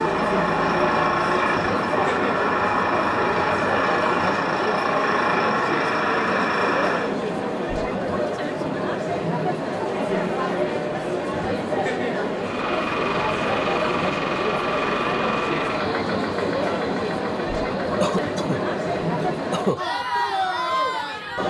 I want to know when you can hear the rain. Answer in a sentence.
You can't hear the rain here.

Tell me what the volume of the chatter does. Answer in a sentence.
The volume of the chatter stays about the same.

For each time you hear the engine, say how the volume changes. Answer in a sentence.
The engine can be heard from 0.0 to 7.2 s, at a steady volume; and from 12.3 to 21.4 s, getting quieter.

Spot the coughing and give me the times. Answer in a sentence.
The coughing can be heard from 18.0 to 19.8 s.